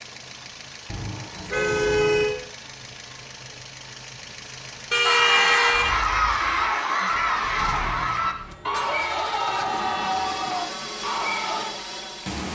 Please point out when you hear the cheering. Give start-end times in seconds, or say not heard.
5.0-11.7.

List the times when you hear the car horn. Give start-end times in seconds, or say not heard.
0.9-2.4, 4.9-6.0, 8.5-10.4.